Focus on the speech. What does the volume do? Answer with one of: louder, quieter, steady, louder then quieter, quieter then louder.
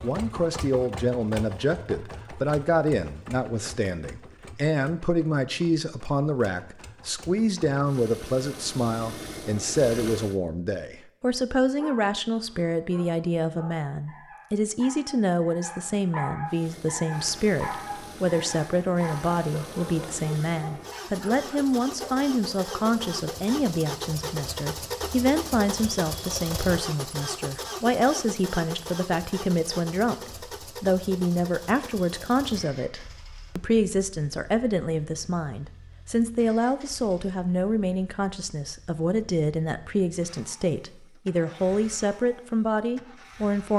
steady.